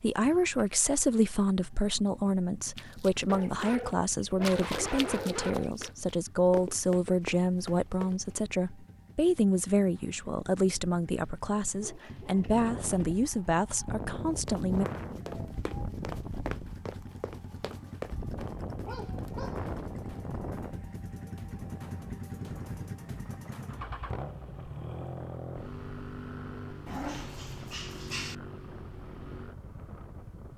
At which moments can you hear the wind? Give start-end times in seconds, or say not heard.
12.3-30.5.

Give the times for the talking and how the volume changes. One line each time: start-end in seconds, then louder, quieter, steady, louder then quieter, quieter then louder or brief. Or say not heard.
0.0-14.8 steady.